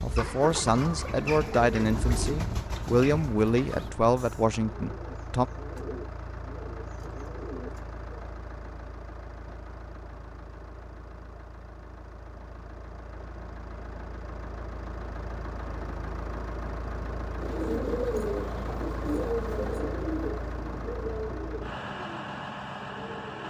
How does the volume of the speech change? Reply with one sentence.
The volume of the speech stays about the same.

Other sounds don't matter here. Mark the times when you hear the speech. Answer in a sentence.
You can hear the speech from 0.0 to 5.5 s.